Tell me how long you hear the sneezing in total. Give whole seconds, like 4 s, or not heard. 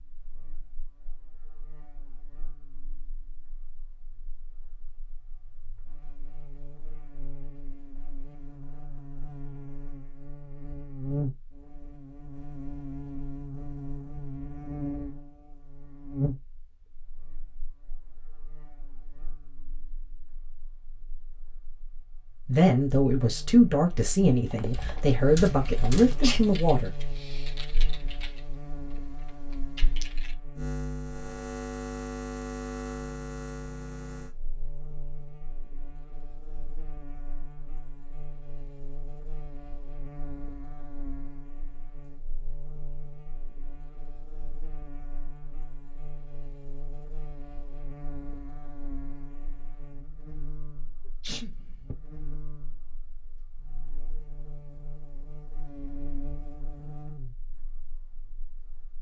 3 s.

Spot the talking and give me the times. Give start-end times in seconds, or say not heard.
22.4-26.9.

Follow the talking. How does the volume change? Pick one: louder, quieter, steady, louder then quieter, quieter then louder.
quieter then louder.